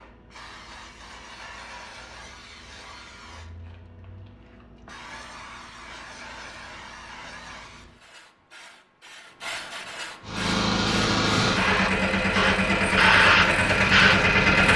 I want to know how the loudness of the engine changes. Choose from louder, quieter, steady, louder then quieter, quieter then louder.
steady.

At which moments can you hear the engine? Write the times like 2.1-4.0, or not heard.
10.2-14.7.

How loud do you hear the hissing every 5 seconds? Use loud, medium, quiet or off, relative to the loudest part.
quiet, quiet, loud.